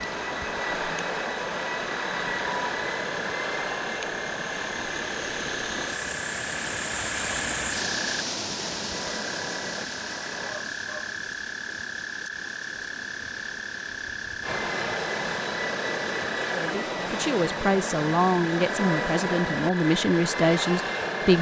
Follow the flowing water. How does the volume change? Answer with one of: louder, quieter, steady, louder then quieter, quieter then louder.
louder then quieter.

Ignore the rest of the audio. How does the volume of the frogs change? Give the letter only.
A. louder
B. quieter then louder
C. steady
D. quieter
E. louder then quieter
C.